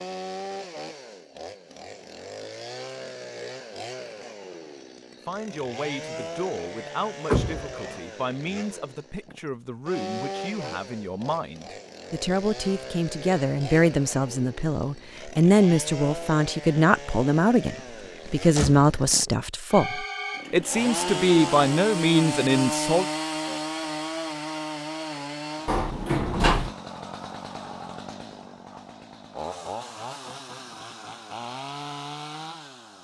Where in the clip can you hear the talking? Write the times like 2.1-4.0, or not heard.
5.2-23.1.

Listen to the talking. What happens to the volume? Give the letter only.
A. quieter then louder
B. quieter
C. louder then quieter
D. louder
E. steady
D.